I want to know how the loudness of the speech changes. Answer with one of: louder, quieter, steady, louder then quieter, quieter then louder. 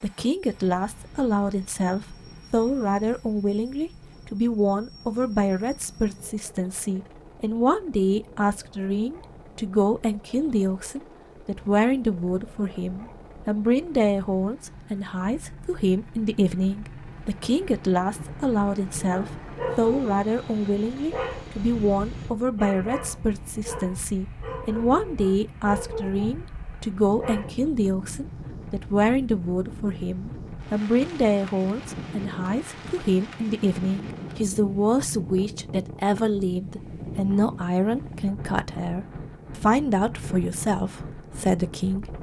steady.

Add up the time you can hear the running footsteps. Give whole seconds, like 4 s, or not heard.
not heard.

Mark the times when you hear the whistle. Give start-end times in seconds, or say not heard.
not heard.